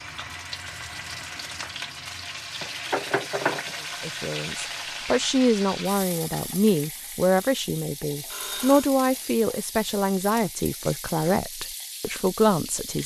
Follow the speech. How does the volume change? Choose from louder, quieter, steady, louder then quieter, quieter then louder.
steady.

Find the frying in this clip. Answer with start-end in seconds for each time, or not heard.
0.0-13.0.